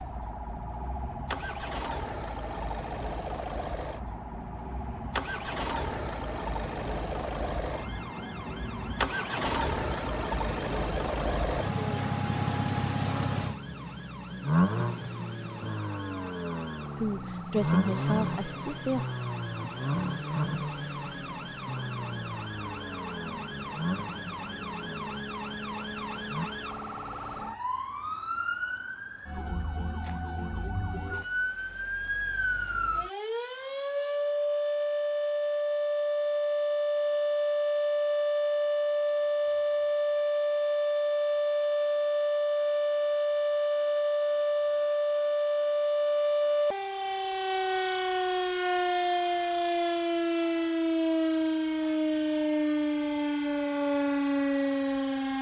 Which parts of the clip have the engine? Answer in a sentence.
You can hear the engine from 0.0 to 26.5 s.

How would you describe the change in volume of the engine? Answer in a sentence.
The volume of the engine goes up, then down.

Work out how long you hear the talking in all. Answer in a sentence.
The talking can be heard for 2 seconds in total.